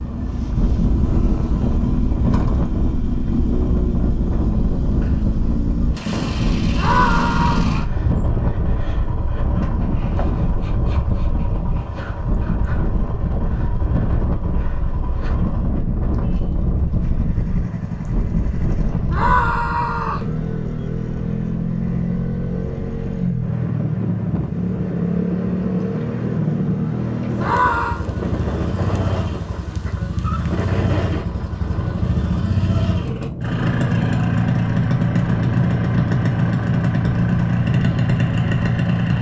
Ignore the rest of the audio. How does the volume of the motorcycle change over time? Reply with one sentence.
The loudness of the motorcycle goes down, then up.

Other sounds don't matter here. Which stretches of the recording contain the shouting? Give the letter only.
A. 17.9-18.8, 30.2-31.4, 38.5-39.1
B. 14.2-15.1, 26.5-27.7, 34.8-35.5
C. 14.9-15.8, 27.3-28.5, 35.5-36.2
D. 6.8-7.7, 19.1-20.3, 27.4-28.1
D.